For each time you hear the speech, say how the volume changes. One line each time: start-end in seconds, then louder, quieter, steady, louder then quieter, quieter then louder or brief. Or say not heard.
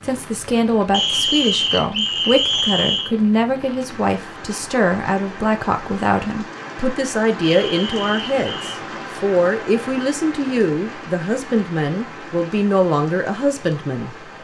0.0-14.2 steady.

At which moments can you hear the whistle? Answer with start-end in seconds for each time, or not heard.
0.9-3.1, 7.4-8.8.